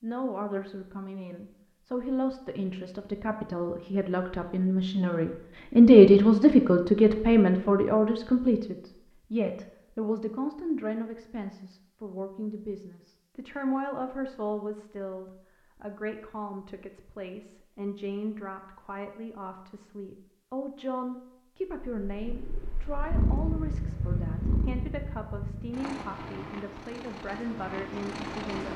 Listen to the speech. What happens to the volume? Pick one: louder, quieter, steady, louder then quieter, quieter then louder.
quieter.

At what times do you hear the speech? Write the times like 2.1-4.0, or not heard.
0.0-28.7.